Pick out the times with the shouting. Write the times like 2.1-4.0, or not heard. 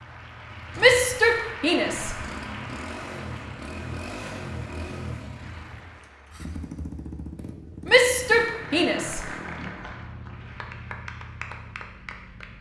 0.8-2.1, 7.8-9.7.